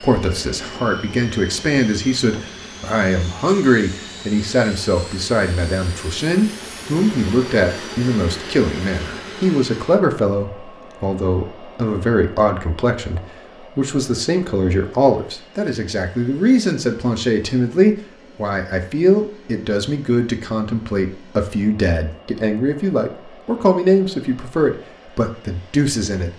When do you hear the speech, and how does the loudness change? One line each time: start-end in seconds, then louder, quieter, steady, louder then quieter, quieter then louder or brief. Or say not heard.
0.0-26.3 steady.